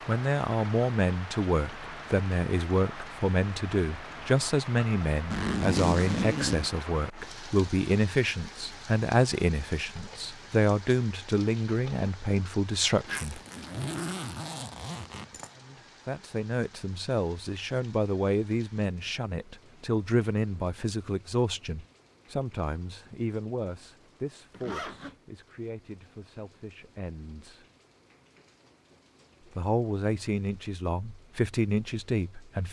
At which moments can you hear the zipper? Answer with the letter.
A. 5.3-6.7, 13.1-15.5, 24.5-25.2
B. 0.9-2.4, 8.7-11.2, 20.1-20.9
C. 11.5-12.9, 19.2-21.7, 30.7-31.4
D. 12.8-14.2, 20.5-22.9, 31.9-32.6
A.